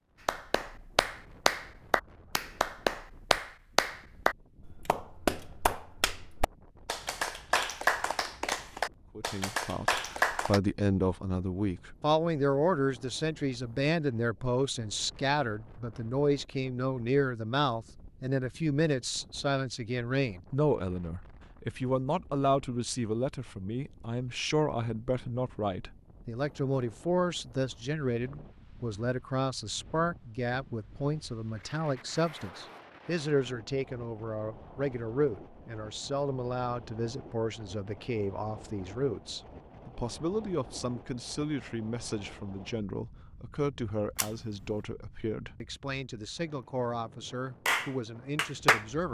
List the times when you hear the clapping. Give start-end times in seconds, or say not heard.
0.2-10.6, 47.6-49.1.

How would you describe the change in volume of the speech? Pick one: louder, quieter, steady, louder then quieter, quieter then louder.
quieter.